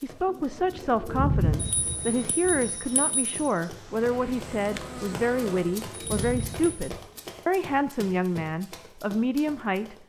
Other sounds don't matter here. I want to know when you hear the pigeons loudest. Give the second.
1 s.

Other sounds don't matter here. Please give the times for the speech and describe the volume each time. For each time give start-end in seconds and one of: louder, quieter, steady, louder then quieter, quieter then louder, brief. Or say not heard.
0.0-10.0 steady.